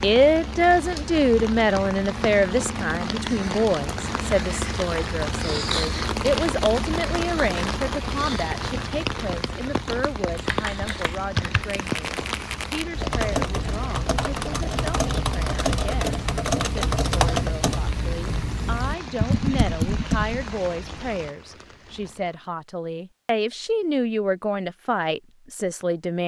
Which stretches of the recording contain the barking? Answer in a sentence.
You can't hear the barking here.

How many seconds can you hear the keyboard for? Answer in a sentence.
The keyboard can be heard for 10 seconds in total.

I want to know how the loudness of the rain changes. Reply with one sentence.
The volume of the rain goes down.